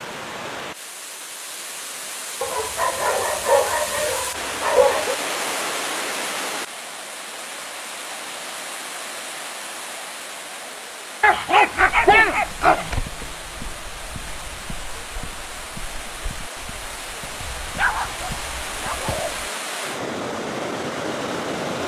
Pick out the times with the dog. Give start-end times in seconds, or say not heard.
2.4-5.2, 11.2-12.9, 17.4-19.4.